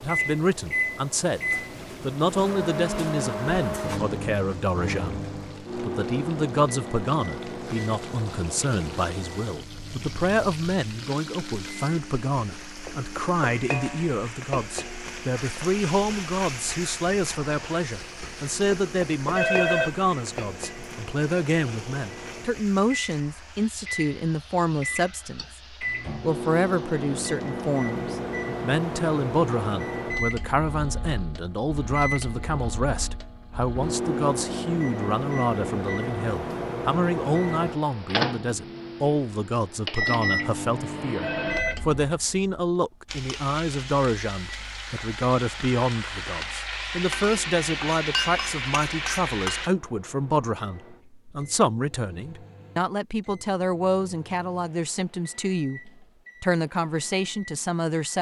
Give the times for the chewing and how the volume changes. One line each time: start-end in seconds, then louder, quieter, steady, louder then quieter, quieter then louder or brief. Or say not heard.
not heard.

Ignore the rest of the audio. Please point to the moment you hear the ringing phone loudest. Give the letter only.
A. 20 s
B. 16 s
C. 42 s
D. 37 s
A.